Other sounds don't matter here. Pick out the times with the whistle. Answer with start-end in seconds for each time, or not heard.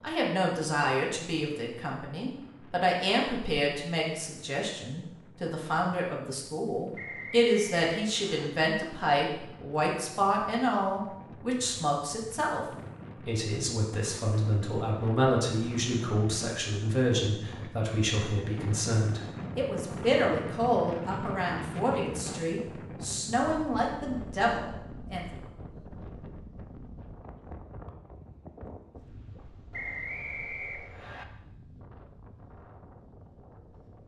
7.0-8.5, 29.7-31.2.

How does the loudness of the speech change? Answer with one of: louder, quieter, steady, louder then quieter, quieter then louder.
steady.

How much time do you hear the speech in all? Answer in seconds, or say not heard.
25 s.